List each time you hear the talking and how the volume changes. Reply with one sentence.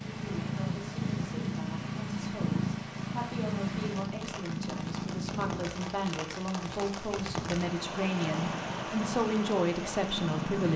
You can hear the talking from 0.1 to 10.7 s, getting louder.